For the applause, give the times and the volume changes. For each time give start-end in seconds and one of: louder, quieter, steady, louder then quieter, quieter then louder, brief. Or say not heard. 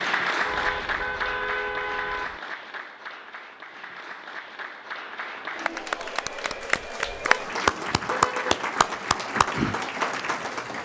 0.0-10.8 quieter then louder.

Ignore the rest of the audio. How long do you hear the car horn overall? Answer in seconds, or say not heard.
3 s.